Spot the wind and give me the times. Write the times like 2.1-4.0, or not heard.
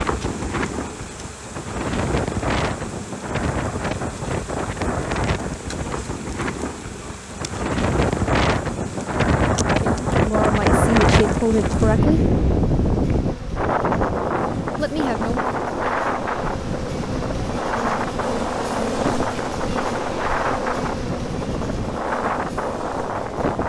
0.0-23.6.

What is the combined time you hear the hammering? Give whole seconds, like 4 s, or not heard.
not heard.